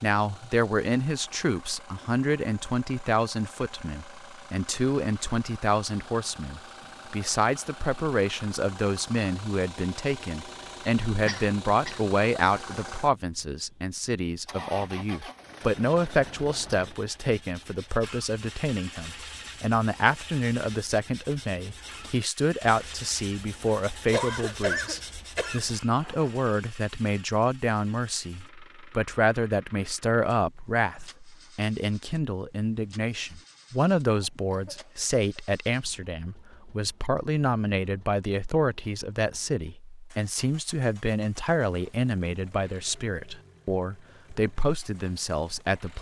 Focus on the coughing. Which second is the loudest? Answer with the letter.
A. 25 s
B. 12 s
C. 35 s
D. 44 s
A.